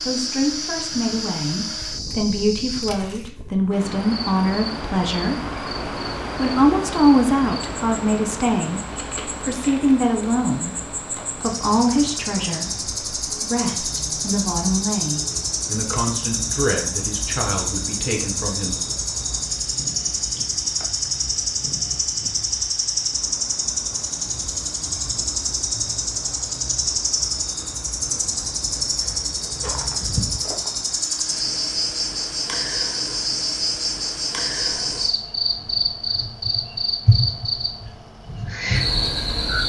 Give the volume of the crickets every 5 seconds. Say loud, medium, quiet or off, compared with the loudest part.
medium, quiet, medium, loud, loud, loud, loud, loud.